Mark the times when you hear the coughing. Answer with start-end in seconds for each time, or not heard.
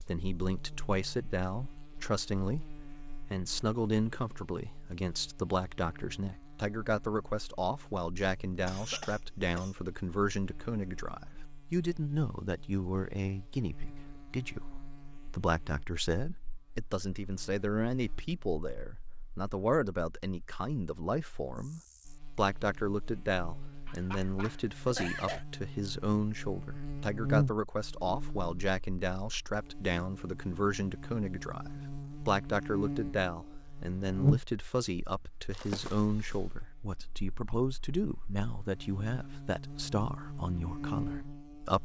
8.2-9.8, 23.9-25.4.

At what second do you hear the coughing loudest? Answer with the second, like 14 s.
25 s.